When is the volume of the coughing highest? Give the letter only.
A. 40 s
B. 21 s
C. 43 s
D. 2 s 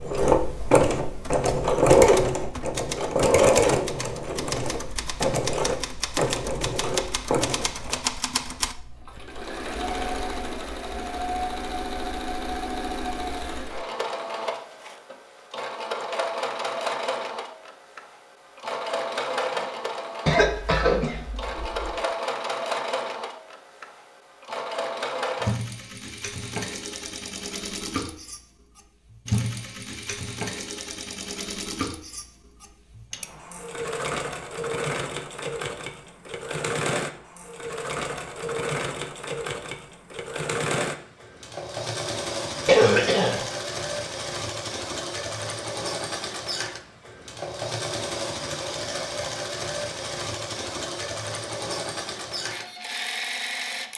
C.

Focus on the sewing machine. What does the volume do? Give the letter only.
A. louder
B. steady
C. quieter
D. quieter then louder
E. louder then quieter
C.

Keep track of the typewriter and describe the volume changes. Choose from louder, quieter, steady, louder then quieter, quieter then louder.
louder.